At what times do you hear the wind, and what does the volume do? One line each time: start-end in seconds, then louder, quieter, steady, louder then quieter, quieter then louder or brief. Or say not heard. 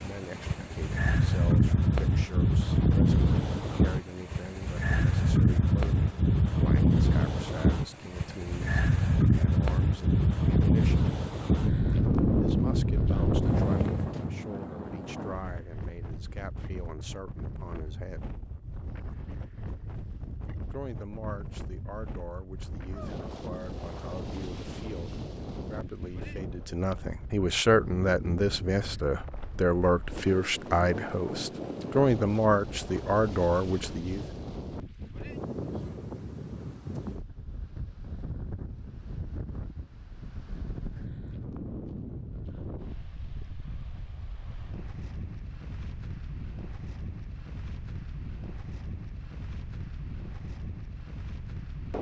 0.0-51.9 quieter.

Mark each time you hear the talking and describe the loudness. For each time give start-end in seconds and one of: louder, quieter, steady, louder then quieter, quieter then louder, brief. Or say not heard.
0.0-11.1 steady
12.3-18.3 steady
20.7-34.2 louder.